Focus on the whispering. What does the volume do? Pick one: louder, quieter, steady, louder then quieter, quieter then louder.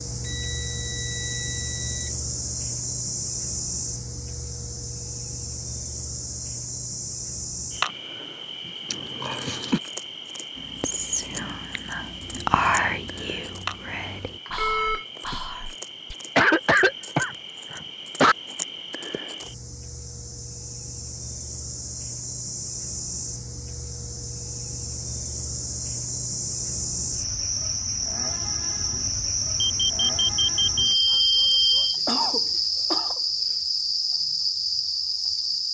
louder then quieter.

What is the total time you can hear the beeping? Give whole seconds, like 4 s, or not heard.
5 s.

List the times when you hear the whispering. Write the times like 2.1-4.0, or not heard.
10.6-16.1.